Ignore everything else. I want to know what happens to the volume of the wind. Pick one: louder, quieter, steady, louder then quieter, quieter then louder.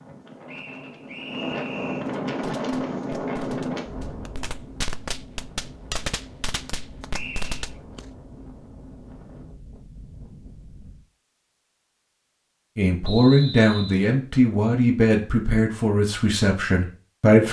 quieter.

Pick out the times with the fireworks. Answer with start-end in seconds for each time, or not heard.
2.0-8.1.